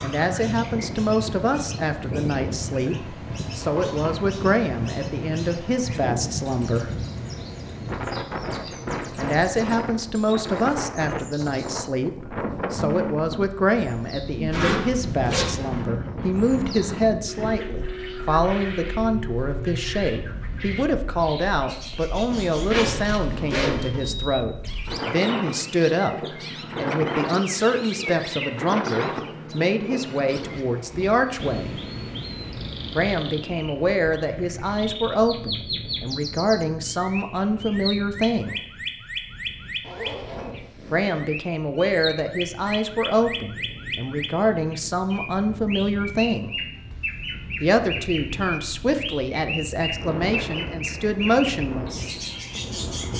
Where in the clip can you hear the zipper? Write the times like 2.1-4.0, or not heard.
14.5-15.8, 22.3-24.1, 39.8-41.1.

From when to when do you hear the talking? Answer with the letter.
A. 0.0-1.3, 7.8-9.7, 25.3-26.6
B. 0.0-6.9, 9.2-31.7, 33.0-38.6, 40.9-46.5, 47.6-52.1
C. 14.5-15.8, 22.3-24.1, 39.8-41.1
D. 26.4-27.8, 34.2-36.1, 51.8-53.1
B.